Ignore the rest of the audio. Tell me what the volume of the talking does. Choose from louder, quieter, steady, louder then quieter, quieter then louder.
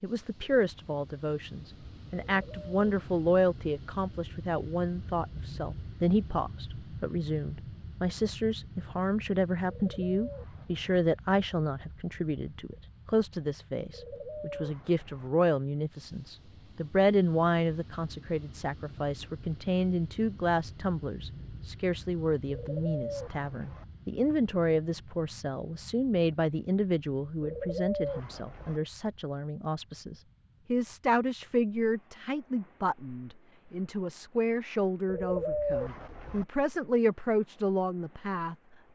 steady.